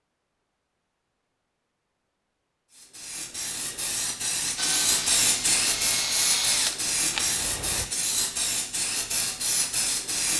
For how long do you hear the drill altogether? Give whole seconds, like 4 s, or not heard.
3 s.